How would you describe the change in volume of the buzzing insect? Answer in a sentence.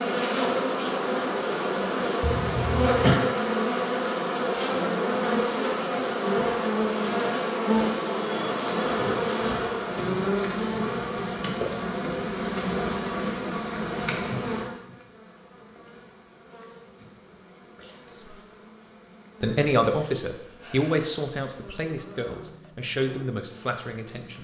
The loudness of the buzzing insect goes down.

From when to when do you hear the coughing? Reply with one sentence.
You can hear the coughing from 2.2 to 3.2 s.